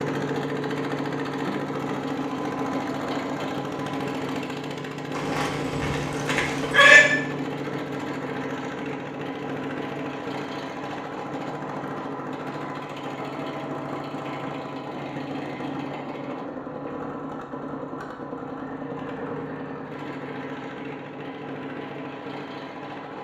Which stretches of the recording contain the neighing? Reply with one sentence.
You can hear the neighing from 5.2 to 7.0 s.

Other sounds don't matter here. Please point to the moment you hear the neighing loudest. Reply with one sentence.
The loudest moment of the neighing is at 7 seconds.